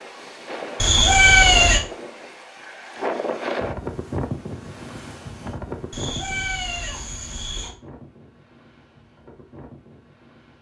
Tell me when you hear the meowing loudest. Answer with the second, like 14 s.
1 s.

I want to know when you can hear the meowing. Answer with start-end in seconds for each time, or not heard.
0.8-1.8, 5.9-7.8.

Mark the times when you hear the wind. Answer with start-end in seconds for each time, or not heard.
0.0-10.5.